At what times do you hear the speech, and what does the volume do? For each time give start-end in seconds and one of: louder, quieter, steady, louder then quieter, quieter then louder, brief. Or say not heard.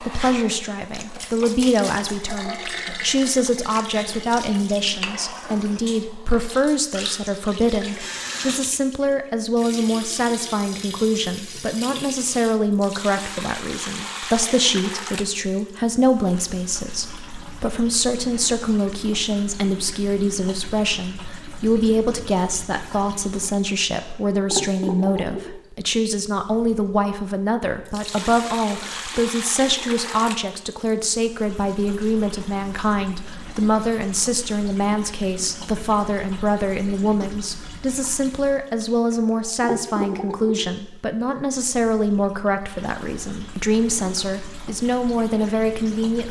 0.0-46.2 steady.